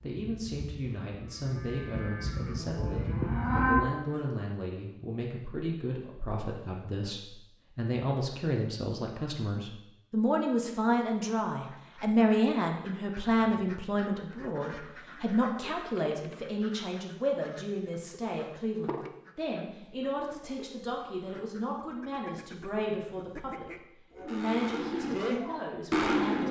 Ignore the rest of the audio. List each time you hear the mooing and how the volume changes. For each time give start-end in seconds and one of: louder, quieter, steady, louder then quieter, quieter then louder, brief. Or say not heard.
0.2-4.2 louder
24.1-26.4 brief.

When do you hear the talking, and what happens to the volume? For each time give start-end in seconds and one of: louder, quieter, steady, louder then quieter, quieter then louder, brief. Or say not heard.
0.0-26.4 louder then quieter.